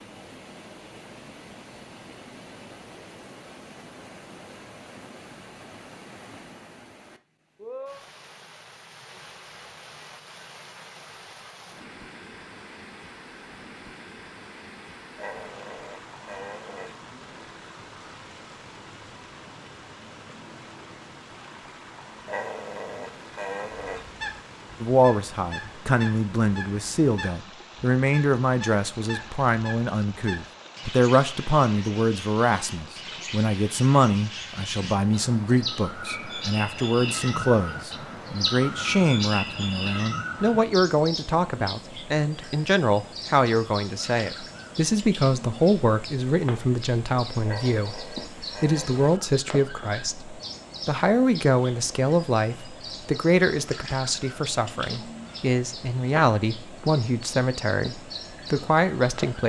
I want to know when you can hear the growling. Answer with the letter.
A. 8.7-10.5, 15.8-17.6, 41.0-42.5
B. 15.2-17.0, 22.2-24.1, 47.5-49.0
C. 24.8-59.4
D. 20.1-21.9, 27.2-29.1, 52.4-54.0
B.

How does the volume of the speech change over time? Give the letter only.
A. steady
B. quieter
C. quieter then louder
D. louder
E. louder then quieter
A.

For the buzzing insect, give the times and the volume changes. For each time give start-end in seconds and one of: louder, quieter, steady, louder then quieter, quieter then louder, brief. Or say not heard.
not heard.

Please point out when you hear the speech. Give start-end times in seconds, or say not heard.
24.8-59.4.